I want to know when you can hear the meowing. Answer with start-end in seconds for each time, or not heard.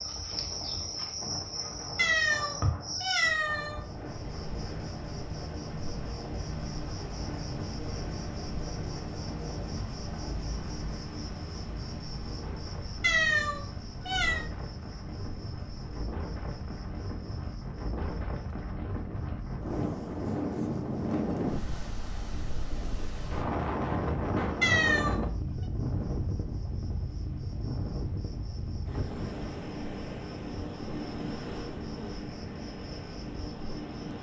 1.9-3.9, 13.0-14.4, 24.6-25.2.